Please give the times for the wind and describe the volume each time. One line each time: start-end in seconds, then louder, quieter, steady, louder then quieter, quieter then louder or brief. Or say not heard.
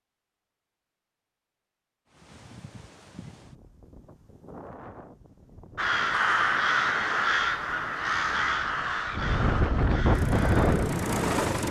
2.0-11.6 louder.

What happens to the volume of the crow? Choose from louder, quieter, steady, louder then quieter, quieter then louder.
quieter.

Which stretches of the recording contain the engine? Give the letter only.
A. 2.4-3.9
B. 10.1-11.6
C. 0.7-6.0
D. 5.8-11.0
B.